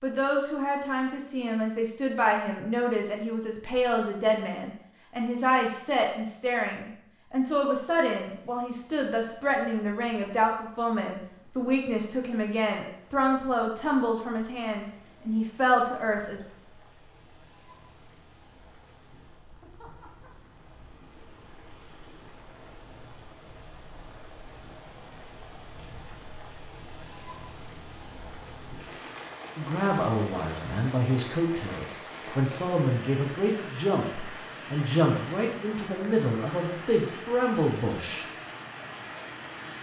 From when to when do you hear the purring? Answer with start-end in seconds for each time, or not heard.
not heard.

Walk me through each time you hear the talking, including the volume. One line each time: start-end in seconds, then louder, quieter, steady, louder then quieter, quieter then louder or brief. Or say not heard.
0.0-16.4 steady
29.6-38.2 steady.